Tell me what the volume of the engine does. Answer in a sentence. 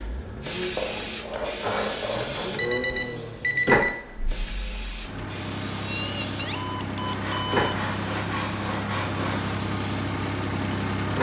The loudness of the engine goes up.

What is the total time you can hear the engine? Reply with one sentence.
The engine can be heard for 11 seconds in total.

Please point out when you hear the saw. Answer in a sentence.
The saw can be heard from 0.8 to 2.5 s and from 7.0 to 9.6 s.